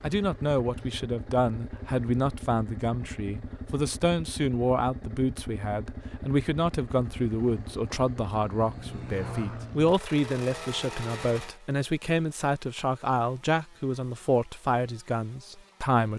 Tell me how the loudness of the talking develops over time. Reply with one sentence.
The loudness of the talking stays about the same.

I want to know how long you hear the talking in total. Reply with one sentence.
The talking can be heard for 16 seconds in total.